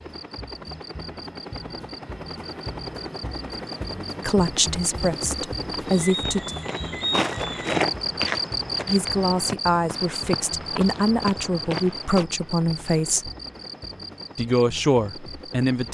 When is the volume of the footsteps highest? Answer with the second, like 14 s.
8 s.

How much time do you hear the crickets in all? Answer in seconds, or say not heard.
16 s.